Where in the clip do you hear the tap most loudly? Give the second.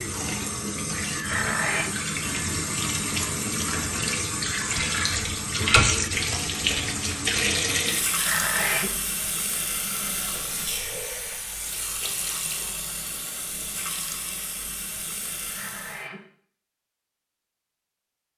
6 s.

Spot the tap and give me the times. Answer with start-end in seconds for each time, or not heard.
0.0-16.1.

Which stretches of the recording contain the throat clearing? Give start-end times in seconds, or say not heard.
1.2-1.9, 8.2-8.9, 15.4-16.2.